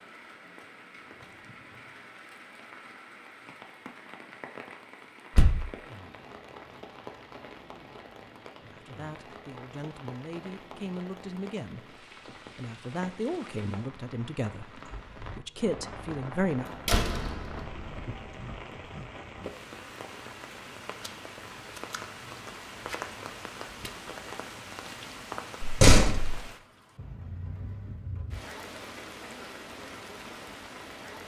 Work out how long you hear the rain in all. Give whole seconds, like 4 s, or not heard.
31 s.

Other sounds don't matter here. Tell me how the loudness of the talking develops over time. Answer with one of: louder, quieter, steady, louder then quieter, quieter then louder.
louder.